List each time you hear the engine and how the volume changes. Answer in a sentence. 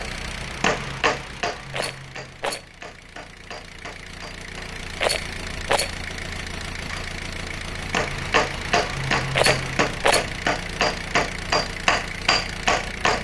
You can hear the engine from 0.0 to 13.2 s, getting louder.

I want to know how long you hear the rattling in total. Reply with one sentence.
You can hear the rattling for 3 seconds altogether.